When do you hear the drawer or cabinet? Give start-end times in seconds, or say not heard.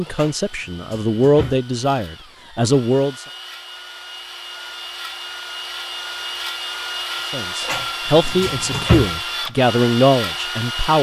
0.1-1.6, 7.7-9.2.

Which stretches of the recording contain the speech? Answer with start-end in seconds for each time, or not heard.
0.0-3.2, 7.3-10.9.